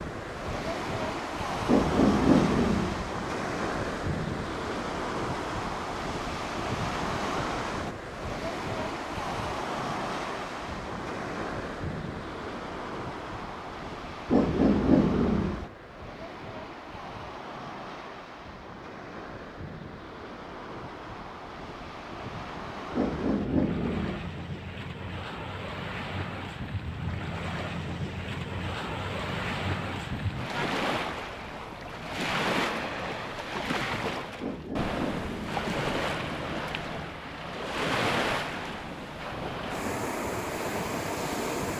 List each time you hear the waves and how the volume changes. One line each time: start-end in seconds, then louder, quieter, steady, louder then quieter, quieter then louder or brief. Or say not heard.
0.0-41.7 quieter then louder.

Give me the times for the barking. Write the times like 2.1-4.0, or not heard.
1.6-3.0, 14.2-15.7, 22.9-24.3, 34.4-35.7.